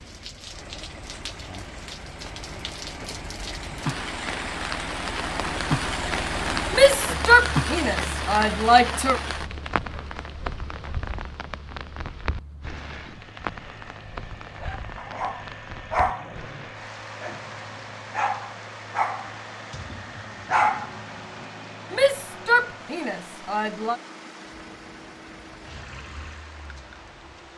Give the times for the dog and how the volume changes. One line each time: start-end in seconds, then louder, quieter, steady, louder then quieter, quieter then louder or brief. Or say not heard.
14.6-21.4 quieter then louder.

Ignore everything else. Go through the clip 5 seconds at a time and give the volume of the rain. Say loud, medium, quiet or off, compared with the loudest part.
medium, loud, medium, quiet, quiet, quiet.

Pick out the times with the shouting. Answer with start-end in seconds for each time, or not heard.
6.7-9.2, 21.9-24.0.